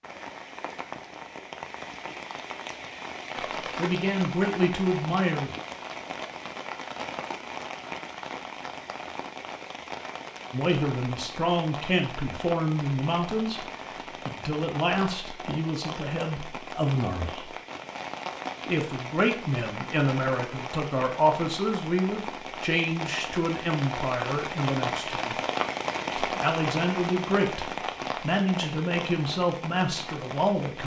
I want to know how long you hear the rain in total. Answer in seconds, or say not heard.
31 s.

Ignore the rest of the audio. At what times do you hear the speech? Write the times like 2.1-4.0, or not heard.
3.8-5.5, 10.5-13.7, 14.2-17.5, 18.6-25.4, 26.2-30.8.